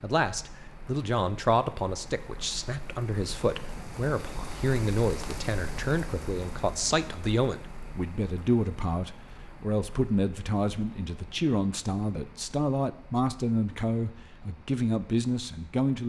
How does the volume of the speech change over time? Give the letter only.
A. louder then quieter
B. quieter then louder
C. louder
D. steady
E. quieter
D.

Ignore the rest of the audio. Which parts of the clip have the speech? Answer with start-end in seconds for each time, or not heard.
0.0-16.0.